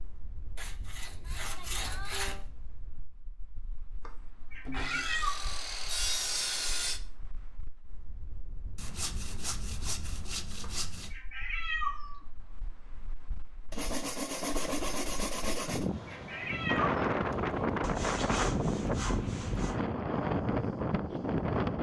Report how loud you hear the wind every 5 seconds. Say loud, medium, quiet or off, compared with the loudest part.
quiet, quiet, quiet, loud, loud.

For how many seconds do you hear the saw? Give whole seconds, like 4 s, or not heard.
11 s.